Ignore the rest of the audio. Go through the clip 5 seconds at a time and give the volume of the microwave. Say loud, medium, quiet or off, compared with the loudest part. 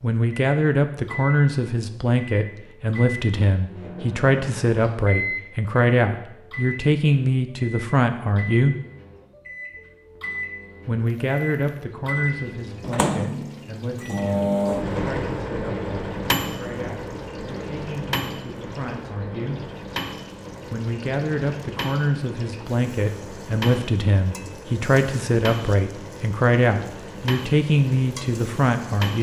medium, medium, loud, loud, medium, medium.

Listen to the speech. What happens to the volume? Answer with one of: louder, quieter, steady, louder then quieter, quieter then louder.
quieter then louder.